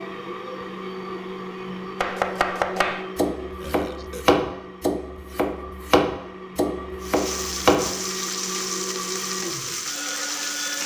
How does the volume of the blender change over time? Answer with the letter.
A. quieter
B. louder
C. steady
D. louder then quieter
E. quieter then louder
E.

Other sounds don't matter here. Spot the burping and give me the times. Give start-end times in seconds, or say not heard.
3.5-4.2.